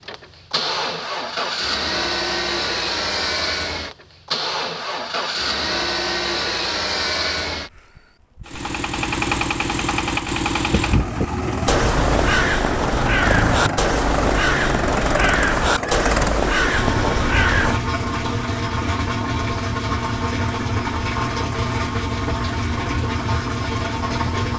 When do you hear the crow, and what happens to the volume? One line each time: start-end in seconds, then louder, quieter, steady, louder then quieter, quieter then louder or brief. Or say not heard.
10.7-17.8 steady.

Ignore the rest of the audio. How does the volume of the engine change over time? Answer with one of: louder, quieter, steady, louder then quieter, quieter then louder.
steady.